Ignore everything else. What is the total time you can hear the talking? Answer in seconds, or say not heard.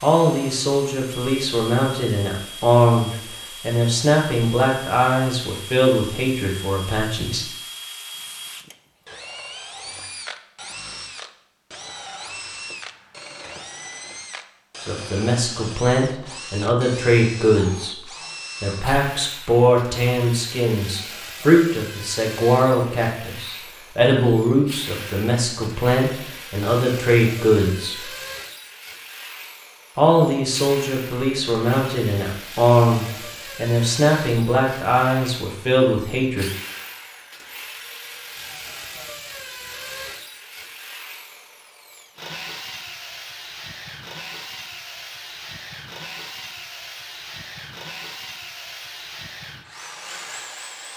27 s.